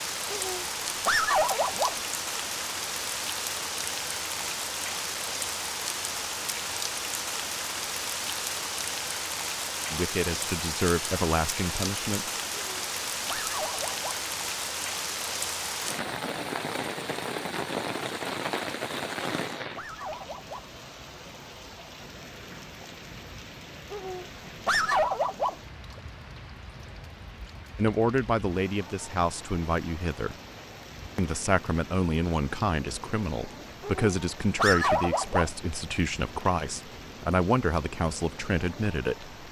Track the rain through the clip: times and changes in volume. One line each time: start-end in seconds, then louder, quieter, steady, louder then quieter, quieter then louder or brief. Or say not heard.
0.0-39.4 quieter.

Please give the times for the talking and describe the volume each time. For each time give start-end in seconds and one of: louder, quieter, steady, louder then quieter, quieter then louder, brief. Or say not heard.
9.9-12.2 brief
27.8-30.4 brief
31.1-39.4 steady.